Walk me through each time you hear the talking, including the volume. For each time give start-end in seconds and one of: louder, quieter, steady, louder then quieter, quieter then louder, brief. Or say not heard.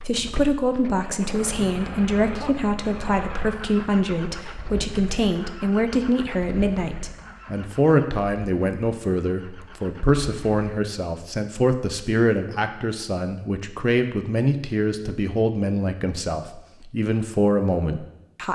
0.1-18.4 steady.